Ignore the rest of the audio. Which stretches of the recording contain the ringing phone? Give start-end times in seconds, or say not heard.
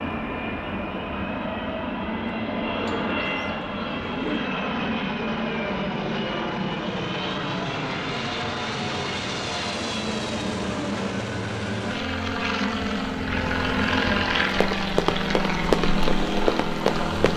not heard.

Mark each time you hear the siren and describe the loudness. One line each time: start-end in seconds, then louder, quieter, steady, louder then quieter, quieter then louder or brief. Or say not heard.
not heard.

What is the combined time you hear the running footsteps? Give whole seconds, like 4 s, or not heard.
3 s.